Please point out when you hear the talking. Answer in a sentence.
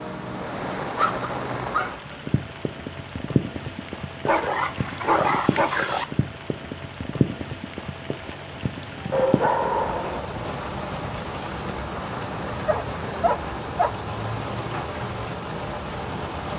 You can't hear the talking here.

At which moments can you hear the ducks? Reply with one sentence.
The ducks can't be heard in this clip.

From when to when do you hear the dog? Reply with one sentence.
You can hear the dog from 0.9 to 1.9 s, from 4.2 to 6.0 s, from 9.1 to 10.2 s and from 12.7 to 13.9 s.